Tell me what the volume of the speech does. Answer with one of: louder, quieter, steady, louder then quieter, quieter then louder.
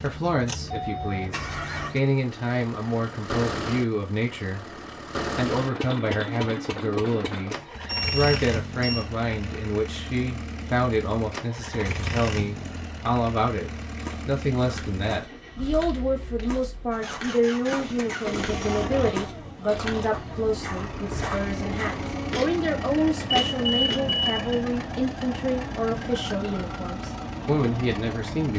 steady.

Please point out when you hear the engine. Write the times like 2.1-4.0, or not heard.
0.0-28.5.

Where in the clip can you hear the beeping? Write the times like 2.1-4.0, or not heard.
7.8-9.1, 23.3-24.5.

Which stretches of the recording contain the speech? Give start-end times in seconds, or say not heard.
0.0-28.5.